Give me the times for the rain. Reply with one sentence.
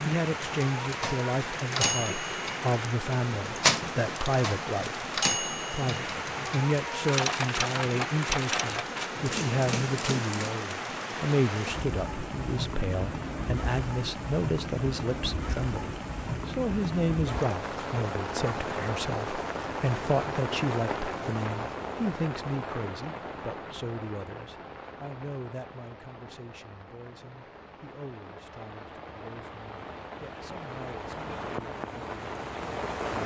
The rain can be heard from 0.0 to 33.2 s.